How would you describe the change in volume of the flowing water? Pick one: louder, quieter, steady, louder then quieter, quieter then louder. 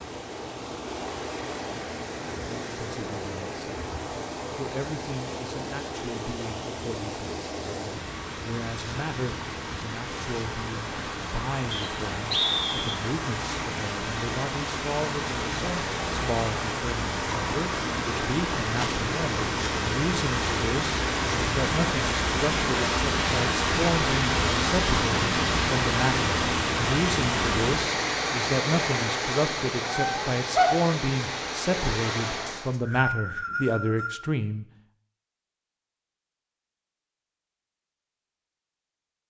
louder.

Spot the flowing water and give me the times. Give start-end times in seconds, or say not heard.
0.0-32.8.